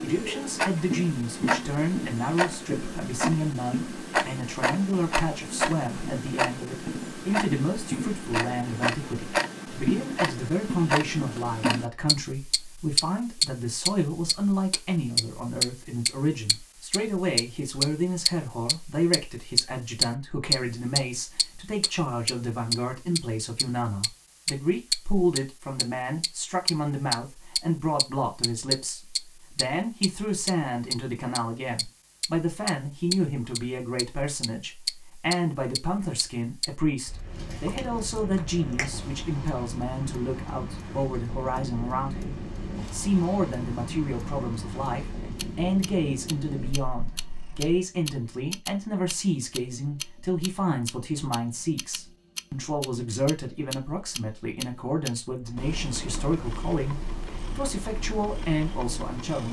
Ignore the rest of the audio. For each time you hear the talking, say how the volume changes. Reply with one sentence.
The talking can be heard from 0.0 to 59.4 s, at a steady volume.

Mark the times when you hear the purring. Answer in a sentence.
The purring can be heard from 37.1 to 47.8 s and from 55.4 to 59.4 s.